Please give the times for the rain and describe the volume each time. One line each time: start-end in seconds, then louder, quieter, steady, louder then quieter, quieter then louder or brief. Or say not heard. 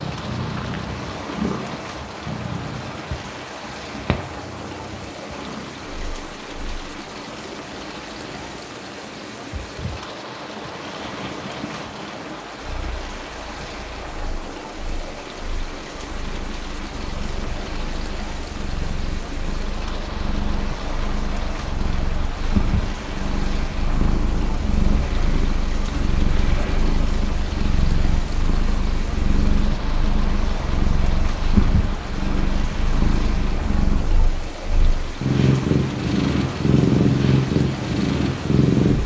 0.0-39.0 steady.